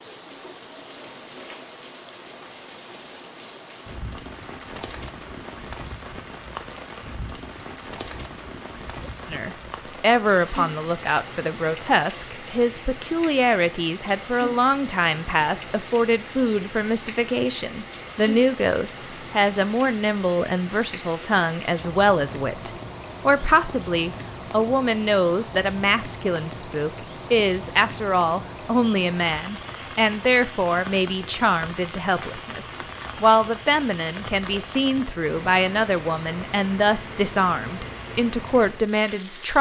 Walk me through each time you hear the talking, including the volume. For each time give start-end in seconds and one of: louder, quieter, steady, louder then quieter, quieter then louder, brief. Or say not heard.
9.1-39.5 steady.